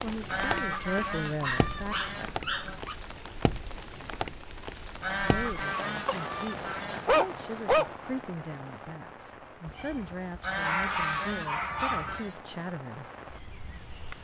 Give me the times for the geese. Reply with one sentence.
You can hear the geese from 0.2 to 2.8 s, from 5.0 to 7.2 s and from 10.4 to 12.4 s.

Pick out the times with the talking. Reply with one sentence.
You can hear the talking from 0.0 to 2.0 s and from 5.2 to 13.1 s.